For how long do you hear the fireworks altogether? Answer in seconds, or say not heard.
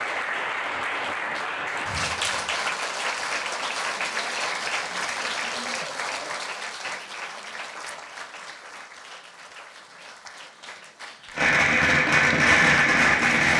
2 s.